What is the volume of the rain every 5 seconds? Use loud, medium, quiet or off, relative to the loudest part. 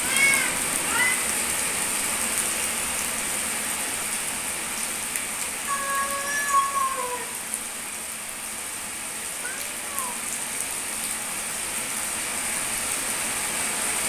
loud, medium, loud.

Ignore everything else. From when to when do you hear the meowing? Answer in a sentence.
You can hear the meowing from 0.0 to 1.2 s, from 5.7 to 7.2 s and from 9.4 to 10.2 s.